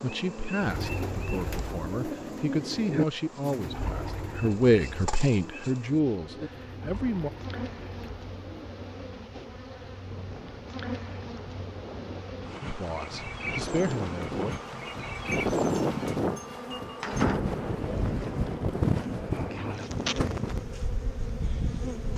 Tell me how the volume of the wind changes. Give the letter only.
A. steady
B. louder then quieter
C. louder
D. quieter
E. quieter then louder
B.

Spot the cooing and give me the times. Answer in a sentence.
You can hear the cooing from 0.6 to 9.2 s.